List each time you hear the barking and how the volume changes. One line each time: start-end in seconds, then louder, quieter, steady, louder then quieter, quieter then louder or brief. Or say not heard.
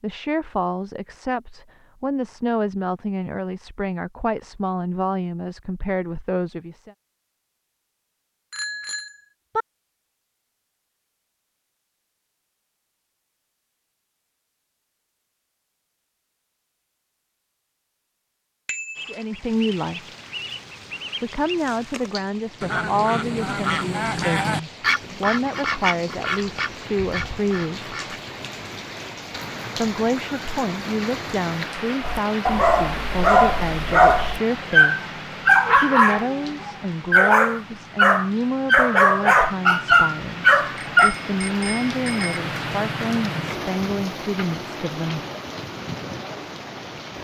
32.0-41.1 steady.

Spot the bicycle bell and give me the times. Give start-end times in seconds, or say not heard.
8.5-9.7, 18.6-19.1, 40.8-42.4.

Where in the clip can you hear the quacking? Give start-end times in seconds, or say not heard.
18.9-28.2.